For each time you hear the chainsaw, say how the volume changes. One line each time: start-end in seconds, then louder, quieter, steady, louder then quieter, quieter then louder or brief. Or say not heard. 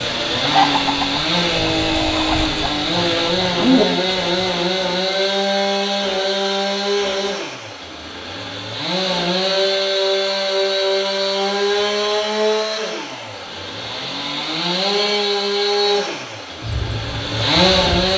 0.0-18.1 steady.